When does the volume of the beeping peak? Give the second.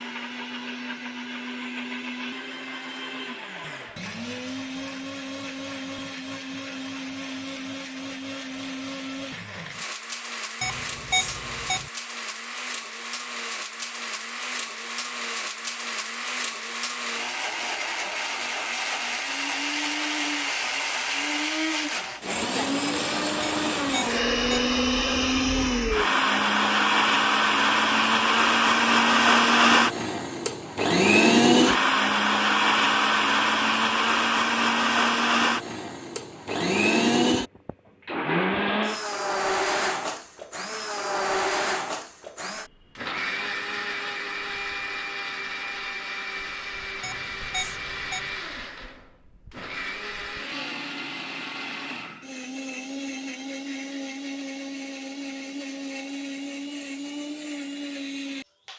11 s.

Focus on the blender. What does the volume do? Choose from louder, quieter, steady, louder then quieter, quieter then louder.
louder then quieter.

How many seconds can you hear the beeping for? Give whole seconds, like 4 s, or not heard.
4 s.